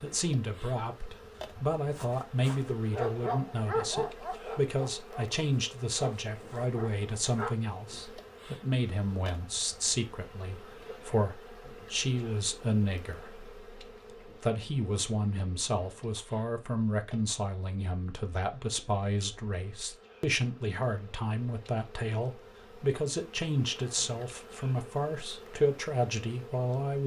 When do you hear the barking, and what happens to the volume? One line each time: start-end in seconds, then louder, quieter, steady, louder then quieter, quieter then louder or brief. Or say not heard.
1.9-7.5 quieter.